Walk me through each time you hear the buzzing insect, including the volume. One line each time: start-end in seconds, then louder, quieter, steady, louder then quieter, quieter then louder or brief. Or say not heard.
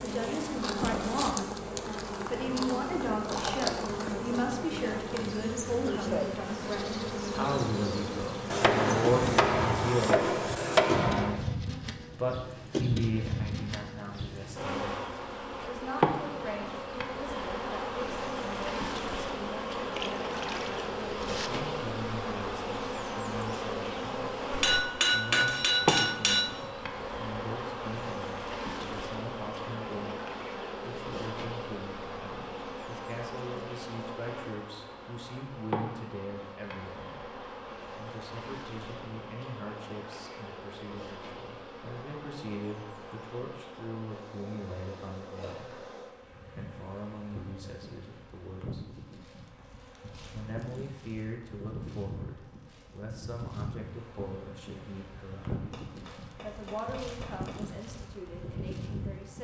0.0-59.3 quieter.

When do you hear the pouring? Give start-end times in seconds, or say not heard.
19.9-21.5.